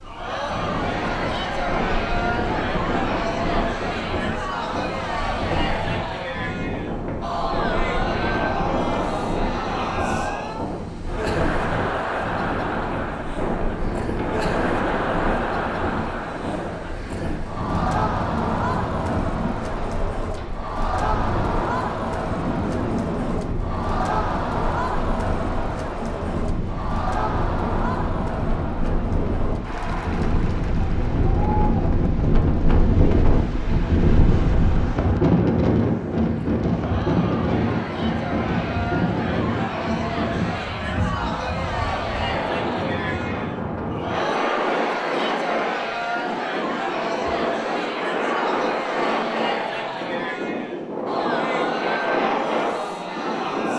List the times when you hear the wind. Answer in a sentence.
The wind can be heard from 0.0 to 53.7 s.